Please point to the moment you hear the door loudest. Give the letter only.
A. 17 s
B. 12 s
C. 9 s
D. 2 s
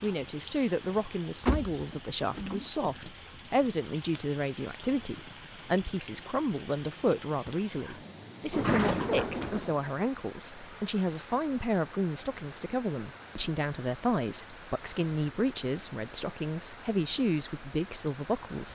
C.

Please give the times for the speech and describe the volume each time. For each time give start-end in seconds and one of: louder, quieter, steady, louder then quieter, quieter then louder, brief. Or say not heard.
0.0-18.7 steady.